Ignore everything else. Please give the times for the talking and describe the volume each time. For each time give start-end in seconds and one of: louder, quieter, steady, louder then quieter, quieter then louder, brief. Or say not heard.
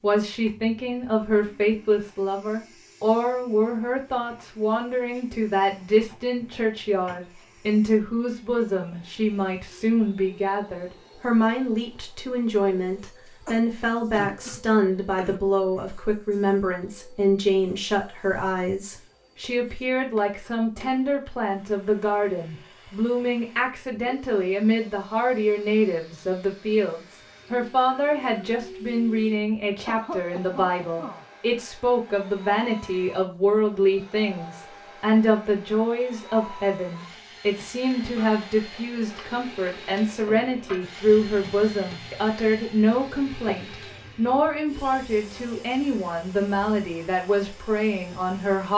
0.0-48.7 steady.